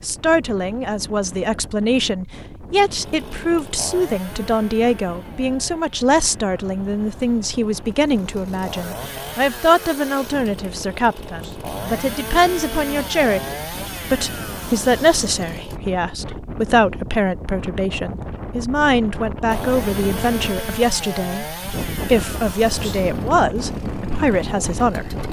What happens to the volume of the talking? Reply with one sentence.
The loudness of the talking stays about the same.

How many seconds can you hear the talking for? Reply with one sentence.
You can hear the talking for 25 seconds altogether.